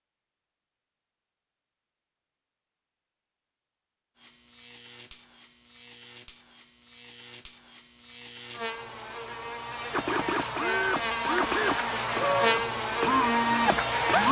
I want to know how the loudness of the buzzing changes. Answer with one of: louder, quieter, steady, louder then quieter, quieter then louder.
louder.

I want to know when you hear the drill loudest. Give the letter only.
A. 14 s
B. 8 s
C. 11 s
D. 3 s
A.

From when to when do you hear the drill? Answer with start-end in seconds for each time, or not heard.
9.9-14.2.